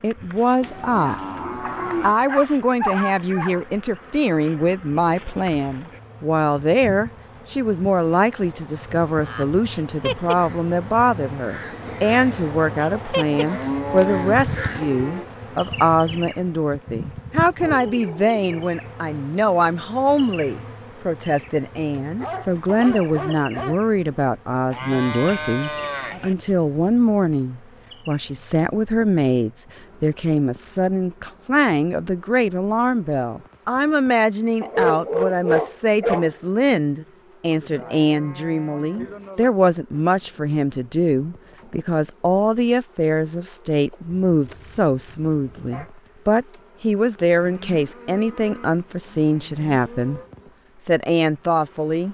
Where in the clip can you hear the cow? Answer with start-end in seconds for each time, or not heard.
0.6-2.1, 13.3-15.2, 24.7-26.4, 37.5-39.5, 47.4-50.3.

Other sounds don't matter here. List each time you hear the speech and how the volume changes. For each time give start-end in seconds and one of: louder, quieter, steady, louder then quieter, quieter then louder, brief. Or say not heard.
0.0-1.2 brief
2.0-50.2 steady
50.9-52.0 brief.